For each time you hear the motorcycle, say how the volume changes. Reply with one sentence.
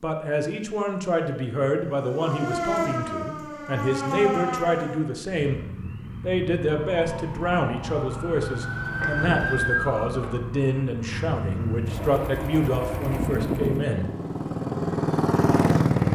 You can hear the motorcycle from 5.4 to 16.1 s, getting louder.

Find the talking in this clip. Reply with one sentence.
The talking can be heard from 0.0 to 5.6 s and from 6.2 to 14.1 s.